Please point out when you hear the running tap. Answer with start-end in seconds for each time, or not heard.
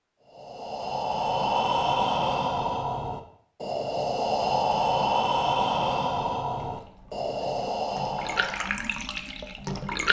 6.6-10.0.